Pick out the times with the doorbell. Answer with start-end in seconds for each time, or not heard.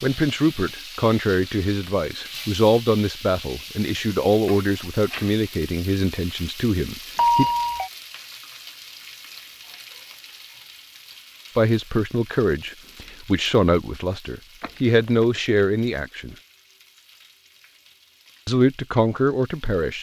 7.2-7.9, 14.6-15.2.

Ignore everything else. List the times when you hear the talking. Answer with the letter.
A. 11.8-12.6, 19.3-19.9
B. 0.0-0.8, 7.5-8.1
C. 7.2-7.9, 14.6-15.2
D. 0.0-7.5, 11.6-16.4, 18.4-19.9
D.